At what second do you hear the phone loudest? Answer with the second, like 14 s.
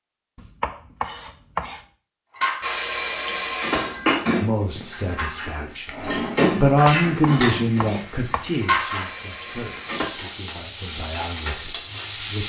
3 s.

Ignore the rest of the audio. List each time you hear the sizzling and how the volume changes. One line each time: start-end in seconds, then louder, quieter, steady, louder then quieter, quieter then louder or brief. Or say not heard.
4.6-12.4 louder.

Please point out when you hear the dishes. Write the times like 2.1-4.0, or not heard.
2.3-8.0, 8.6-10.1.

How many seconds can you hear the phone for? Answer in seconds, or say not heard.
3 s.